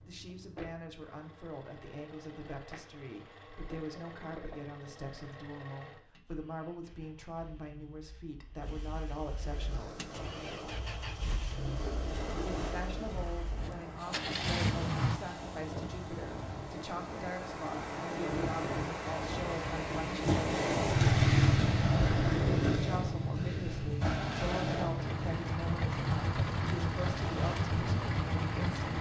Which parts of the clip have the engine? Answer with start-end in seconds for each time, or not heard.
0.0-15.2, 24.9-28.9.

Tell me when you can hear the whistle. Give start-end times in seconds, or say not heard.
not heard.